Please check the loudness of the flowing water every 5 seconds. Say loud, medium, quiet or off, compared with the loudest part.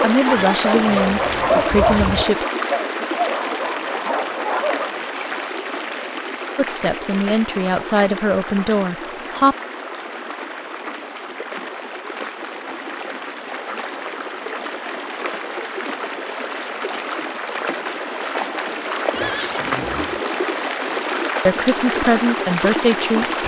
loud, medium, medium, loud, loud.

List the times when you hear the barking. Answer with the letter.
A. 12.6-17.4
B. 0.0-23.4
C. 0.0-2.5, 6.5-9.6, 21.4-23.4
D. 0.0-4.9
D.